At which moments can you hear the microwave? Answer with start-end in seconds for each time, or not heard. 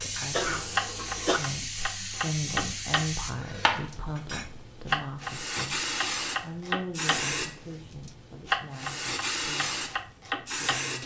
not heard.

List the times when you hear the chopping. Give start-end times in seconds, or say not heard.
0.0-10.8.